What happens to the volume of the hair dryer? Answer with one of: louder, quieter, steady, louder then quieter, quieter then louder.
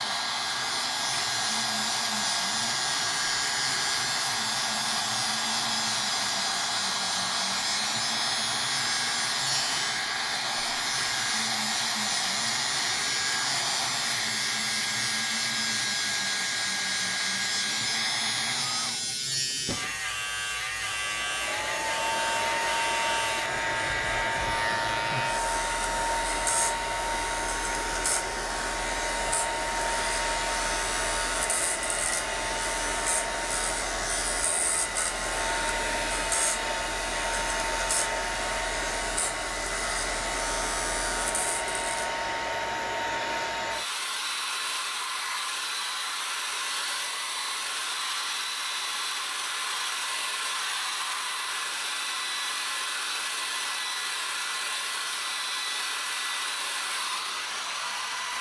steady.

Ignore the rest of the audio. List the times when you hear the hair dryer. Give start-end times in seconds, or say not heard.
0.0-58.3.